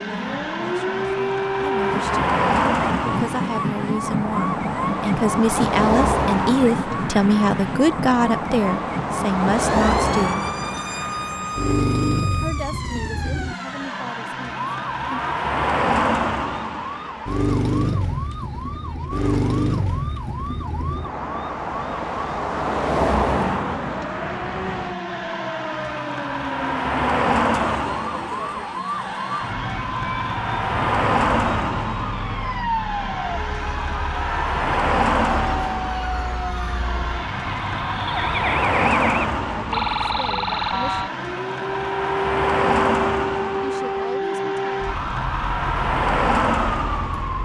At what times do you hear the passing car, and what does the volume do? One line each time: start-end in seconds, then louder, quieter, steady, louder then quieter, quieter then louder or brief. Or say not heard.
0.0-47.3 steady.